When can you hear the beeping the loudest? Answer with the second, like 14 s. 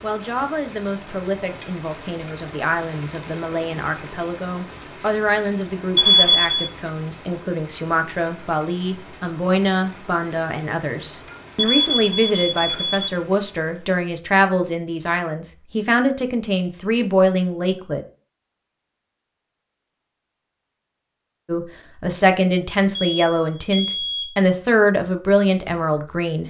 6 s.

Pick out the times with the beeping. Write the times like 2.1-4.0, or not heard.
6.0-6.7, 11.6-13.1, 23.0-24.4.